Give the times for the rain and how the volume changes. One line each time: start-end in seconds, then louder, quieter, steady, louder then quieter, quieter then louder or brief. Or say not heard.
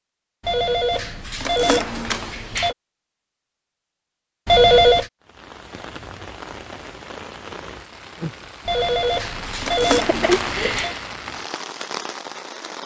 5.2-12.8 louder then quieter.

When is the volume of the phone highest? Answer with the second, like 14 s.
5 s.